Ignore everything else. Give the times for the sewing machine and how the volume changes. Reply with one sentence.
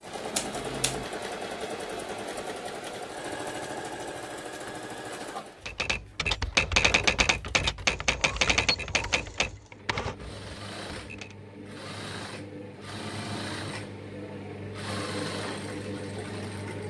You can hear the sewing machine from 0.0 to 16.8 s, getting quieter then louder.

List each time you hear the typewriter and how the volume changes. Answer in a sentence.
You can hear the typewriter from 5.7 to 11.3 s, getting quieter.